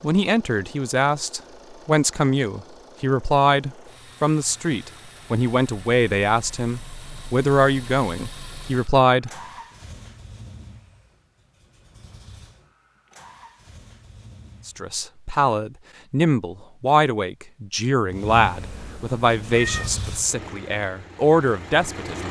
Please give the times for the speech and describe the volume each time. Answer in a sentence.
The speech can be heard from 0.0 to 9.3 s, at a steady volume; and from 14.7 to 22.2 s, at a steady volume.